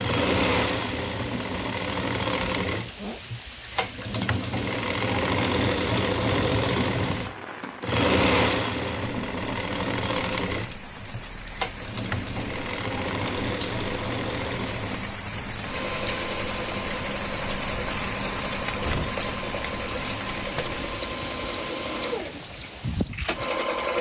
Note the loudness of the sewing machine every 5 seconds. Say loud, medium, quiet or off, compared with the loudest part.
loud, loud, medium, medium, medium.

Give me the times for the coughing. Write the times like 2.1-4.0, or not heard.
not heard.